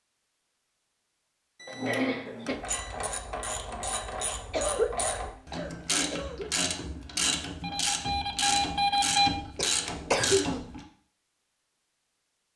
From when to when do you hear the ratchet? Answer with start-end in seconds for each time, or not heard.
2.5-10.8.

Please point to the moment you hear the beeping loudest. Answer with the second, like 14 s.
9 s.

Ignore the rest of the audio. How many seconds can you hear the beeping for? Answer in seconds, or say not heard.
3 s.